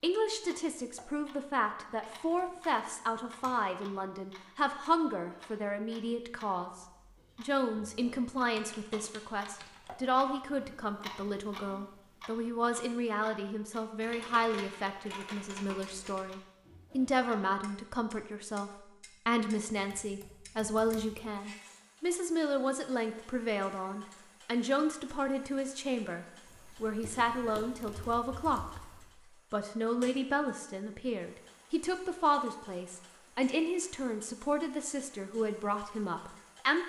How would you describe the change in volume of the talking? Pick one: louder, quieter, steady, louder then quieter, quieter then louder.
steady.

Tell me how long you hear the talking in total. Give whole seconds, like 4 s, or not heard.
36 s.